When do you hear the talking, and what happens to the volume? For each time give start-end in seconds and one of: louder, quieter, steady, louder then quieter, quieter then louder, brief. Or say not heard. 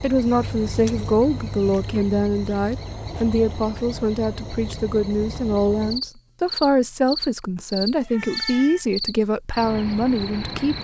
0.0-10.7 steady.